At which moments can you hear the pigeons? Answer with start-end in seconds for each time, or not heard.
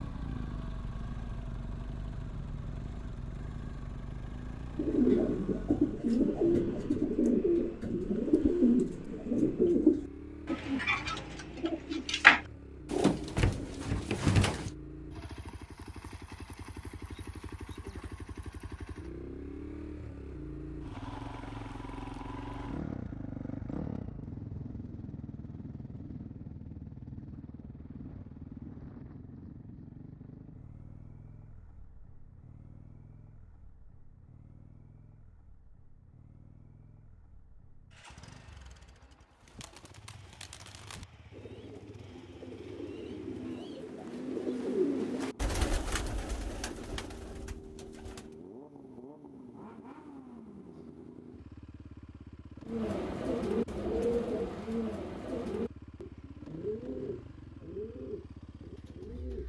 4.8-14.7, 39.4-48.4, 52.6-59.4.